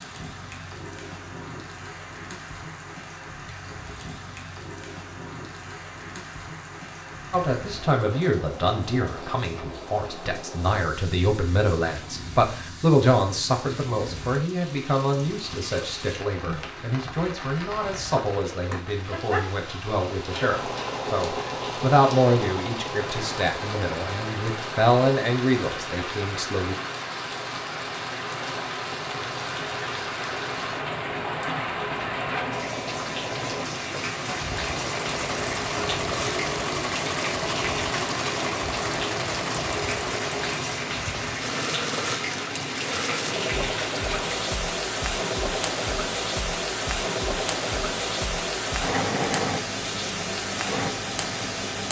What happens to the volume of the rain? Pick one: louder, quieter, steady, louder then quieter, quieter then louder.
louder.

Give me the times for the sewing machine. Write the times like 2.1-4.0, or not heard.
20.1-51.8.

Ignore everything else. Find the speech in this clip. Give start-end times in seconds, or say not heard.
7.3-26.8.